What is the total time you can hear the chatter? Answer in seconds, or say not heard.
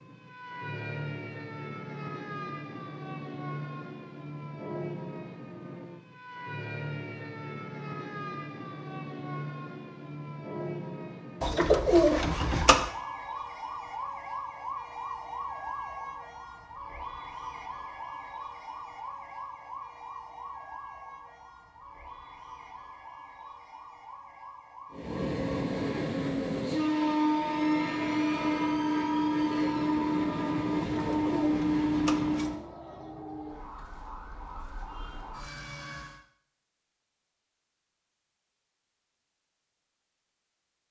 not heard.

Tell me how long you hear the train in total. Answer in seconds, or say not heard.
8 s.